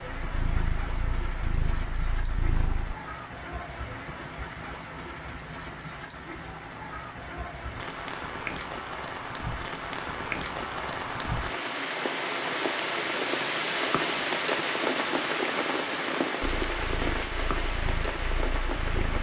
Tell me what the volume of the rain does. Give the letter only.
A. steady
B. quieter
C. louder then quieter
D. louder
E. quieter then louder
D.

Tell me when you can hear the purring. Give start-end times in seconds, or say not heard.
0.2-3.0, 16.4-19.1.